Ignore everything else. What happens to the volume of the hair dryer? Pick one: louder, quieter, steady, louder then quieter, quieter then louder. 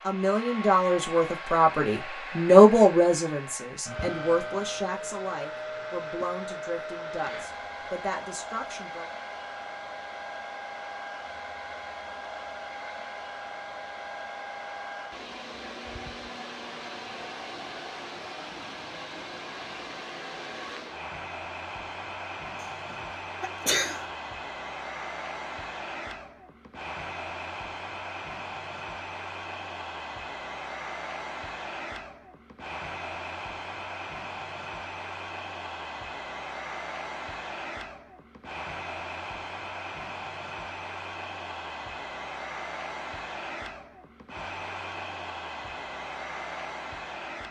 steady.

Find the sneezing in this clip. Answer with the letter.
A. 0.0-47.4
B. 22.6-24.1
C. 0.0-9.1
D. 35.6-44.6
B.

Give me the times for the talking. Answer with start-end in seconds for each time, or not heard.
0.0-9.1.